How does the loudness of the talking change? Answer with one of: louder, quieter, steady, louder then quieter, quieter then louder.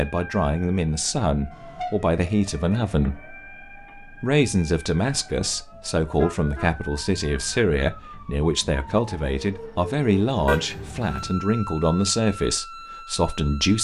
steady.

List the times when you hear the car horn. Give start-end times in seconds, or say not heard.
1.5-2.1, 6.0-6.7, 10.4-11.3.